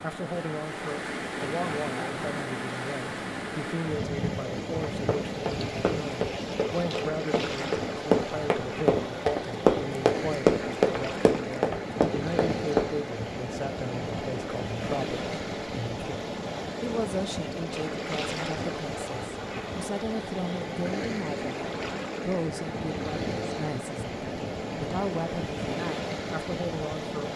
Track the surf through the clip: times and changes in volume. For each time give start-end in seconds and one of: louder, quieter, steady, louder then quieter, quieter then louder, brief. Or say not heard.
0.0-27.3 steady.